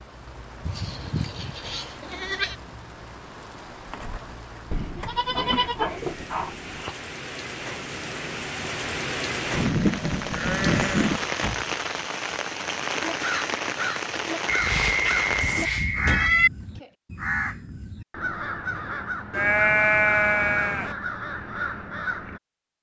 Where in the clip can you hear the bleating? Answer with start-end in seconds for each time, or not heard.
0.7-2.5, 4.7-7.0, 9.5-11.2, 14.4-16.5, 19.3-20.9.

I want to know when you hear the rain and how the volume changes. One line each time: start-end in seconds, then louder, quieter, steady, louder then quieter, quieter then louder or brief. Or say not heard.
0.0-15.7 louder.